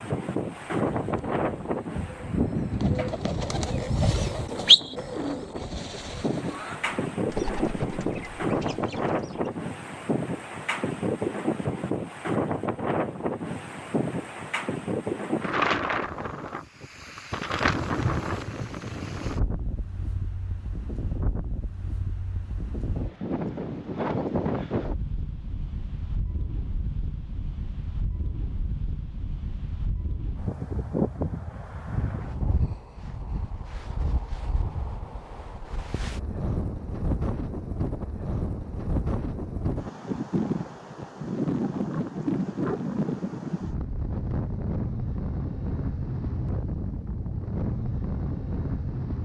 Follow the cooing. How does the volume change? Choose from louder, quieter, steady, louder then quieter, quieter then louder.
louder then quieter.